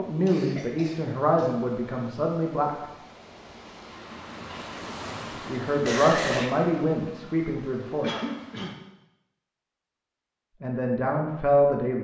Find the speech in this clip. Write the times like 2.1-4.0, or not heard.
0.0-2.8, 5.5-8.1, 10.6-11.9.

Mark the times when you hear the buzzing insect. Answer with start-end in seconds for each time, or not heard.
not heard.